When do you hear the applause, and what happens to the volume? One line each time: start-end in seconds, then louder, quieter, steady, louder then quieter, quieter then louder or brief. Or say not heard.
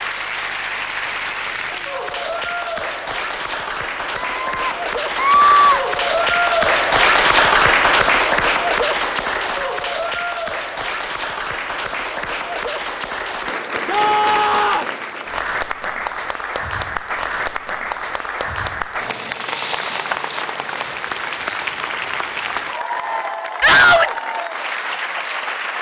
0.0-25.7 louder then quieter.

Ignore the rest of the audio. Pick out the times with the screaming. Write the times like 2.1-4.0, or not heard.
4.2-5.8, 13.8-14.9, 23.6-24.1.